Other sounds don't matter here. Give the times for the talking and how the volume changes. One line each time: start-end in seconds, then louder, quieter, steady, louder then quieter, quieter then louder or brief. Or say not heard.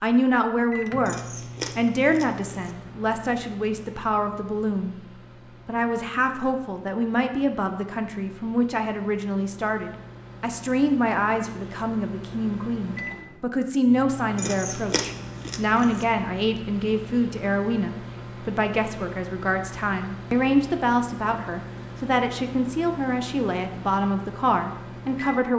0.0-25.5 steady.